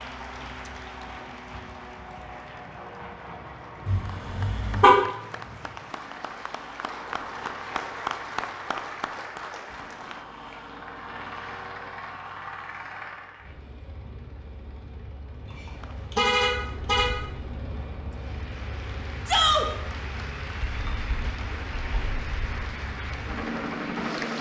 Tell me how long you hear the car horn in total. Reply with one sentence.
You can hear the car horn for 3 seconds altogether.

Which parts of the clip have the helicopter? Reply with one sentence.
The helicopter can be heard from 0.0 to 24.3 s.